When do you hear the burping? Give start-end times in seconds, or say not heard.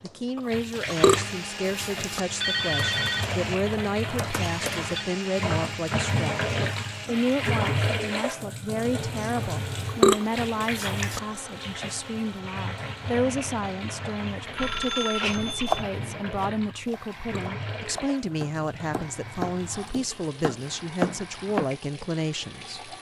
0.3-2.2, 9.3-11.2, 16.6-17.4.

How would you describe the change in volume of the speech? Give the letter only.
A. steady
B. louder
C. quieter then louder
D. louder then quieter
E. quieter
A.